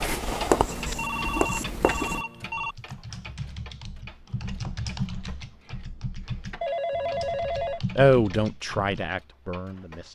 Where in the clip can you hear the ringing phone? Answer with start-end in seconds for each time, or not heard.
0.7-2.8, 6.6-7.8.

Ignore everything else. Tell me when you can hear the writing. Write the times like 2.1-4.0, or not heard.
0.0-2.2.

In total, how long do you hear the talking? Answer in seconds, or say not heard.
2 s.